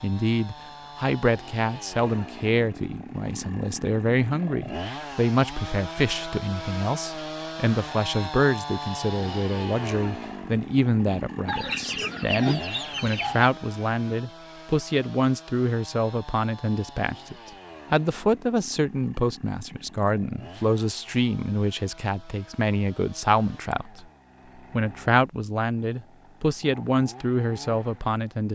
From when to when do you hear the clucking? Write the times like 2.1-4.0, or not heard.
11.4-13.5.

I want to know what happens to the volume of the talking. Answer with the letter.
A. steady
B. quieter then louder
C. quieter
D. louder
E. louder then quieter
A.